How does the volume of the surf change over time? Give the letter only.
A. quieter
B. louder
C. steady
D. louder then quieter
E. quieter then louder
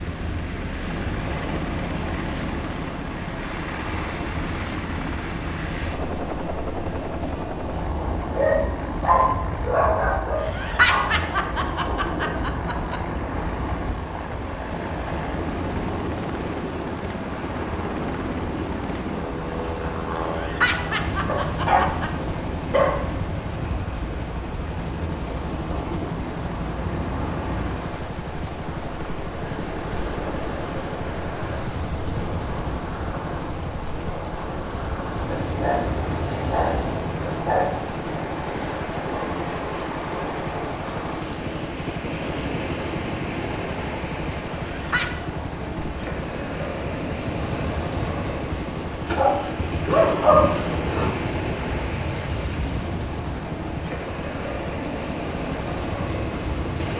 C.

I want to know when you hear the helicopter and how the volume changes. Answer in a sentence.
The helicopter can be heard from 0.0 to 56.9 s, at a steady volume.